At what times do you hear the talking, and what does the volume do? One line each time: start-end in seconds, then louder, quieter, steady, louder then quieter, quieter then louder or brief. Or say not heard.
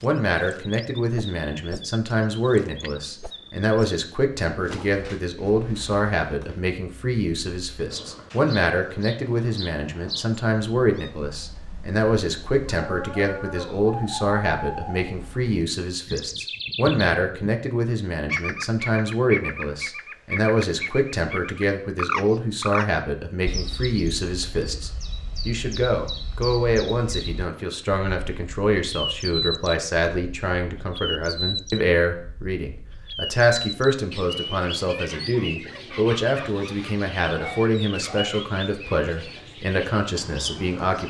0.0-41.0 steady.